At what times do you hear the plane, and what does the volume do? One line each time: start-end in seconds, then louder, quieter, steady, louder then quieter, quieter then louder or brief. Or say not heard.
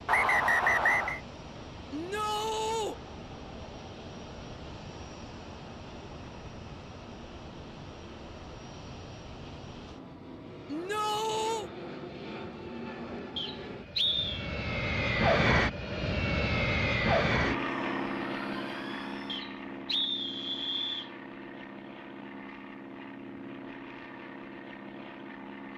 0.0-25.7 louder then quieter.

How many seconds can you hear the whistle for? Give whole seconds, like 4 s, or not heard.
4 s.